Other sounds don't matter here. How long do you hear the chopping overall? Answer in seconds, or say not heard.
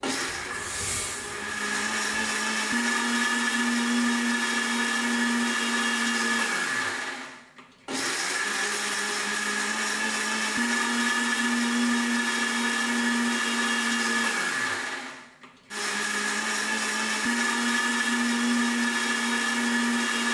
not heard.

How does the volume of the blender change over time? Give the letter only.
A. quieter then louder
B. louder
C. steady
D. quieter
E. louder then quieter
C.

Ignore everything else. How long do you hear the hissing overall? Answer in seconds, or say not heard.
2 s.